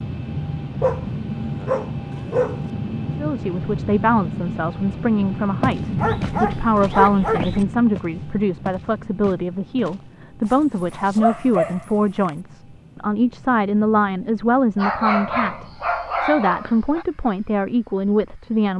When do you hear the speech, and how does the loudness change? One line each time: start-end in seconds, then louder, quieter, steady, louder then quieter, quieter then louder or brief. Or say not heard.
3.1-18.7 steady.